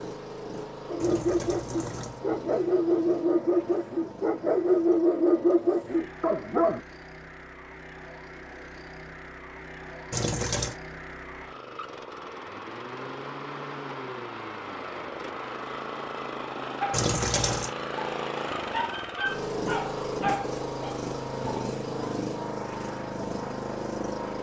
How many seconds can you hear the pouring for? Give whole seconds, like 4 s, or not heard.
3 s.